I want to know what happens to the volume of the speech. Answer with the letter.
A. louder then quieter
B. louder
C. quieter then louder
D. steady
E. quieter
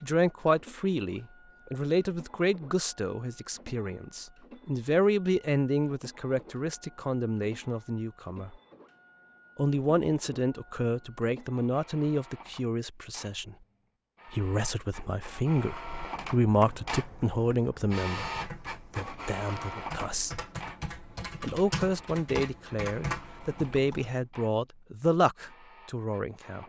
D.